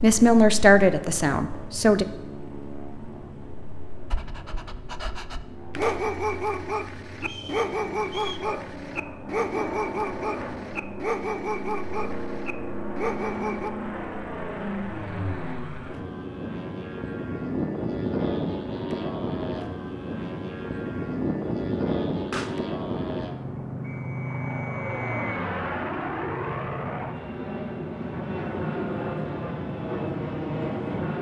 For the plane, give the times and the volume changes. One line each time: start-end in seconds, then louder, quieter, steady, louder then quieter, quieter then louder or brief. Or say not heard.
0.0-31.1 louder.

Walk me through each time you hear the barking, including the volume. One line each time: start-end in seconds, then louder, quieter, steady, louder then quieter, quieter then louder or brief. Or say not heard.
4.1-13.7 steady.